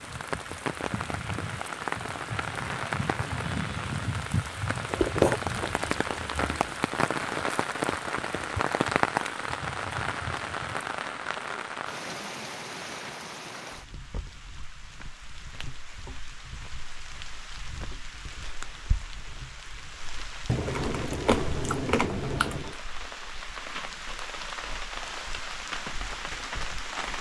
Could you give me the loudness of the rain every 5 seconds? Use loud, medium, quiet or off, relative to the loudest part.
loud, loud, medium, quiet, medium, medium.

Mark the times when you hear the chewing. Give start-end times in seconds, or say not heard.
4.9-6.8, 20.4-22.8.